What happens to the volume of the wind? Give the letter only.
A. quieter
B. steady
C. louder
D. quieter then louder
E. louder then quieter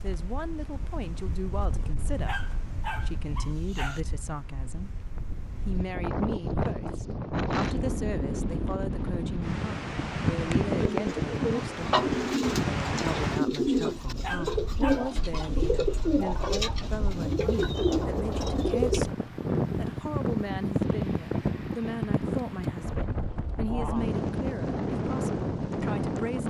C.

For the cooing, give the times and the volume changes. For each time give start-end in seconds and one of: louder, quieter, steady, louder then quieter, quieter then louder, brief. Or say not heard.
10.8-19.1 steady.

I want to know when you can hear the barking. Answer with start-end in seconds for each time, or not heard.
2.0-4.0, 14.0-15.6.